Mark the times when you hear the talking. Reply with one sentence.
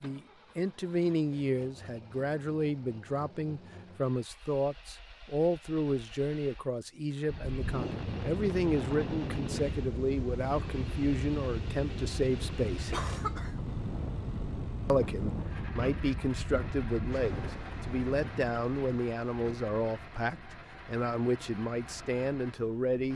You can hear the talking from 0.0 to 12.9 s and from 14.8 to 23.1 s.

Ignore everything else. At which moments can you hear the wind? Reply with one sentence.
You can hear the wind from 7.2 to 23.1 s.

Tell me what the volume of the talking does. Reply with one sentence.
The loudness of the talking stays about the same.